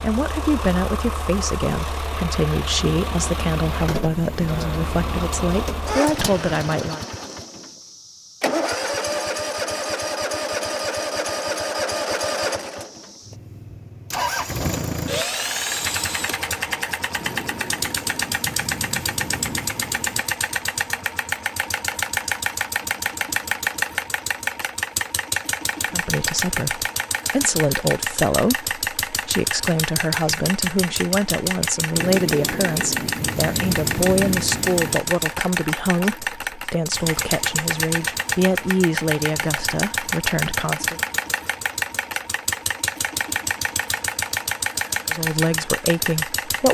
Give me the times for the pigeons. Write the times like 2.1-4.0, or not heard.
not heard.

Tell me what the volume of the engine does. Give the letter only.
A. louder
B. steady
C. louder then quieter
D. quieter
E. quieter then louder
B.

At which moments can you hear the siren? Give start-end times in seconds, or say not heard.
not heard.